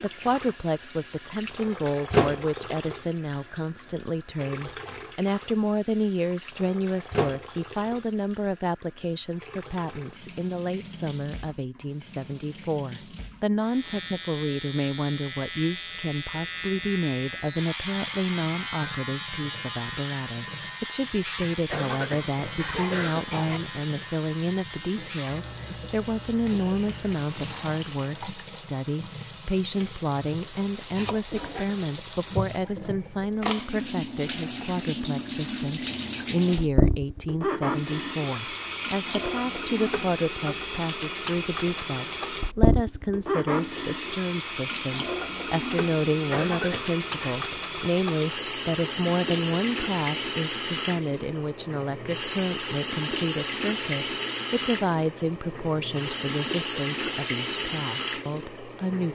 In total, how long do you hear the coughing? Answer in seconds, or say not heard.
3 s.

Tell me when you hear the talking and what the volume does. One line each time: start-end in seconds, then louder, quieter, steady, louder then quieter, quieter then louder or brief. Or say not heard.
0.0-59.0 steady.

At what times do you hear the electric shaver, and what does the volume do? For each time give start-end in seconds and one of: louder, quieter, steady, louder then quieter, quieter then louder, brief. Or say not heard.
13.6-28.1 quieter.